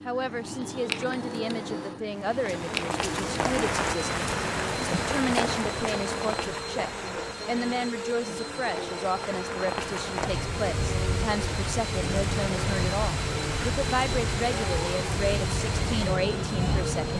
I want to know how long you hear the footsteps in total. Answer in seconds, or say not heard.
not heard.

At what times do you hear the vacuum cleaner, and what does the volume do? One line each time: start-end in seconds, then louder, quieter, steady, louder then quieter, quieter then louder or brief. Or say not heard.
0.0-17.1 steady.